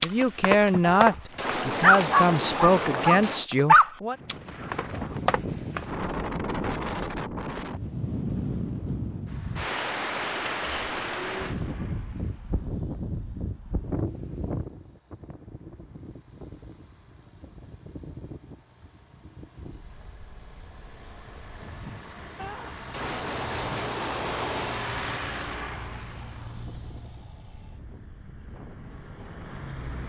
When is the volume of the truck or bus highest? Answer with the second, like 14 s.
25 s.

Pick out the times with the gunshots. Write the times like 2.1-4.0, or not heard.
0.8-3.5, 22.4-24.9.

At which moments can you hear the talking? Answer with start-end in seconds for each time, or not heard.
0.0-4.2.